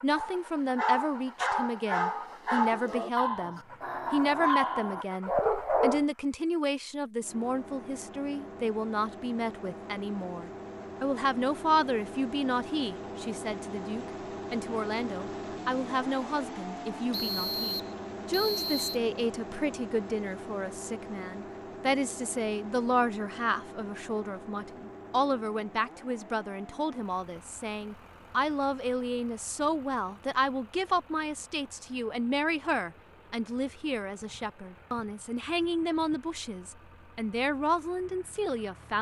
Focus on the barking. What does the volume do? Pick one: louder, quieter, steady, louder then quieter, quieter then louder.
steady.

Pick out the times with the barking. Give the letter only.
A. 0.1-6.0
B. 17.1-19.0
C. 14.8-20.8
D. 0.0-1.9
A.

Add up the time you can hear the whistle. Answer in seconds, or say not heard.
2 s.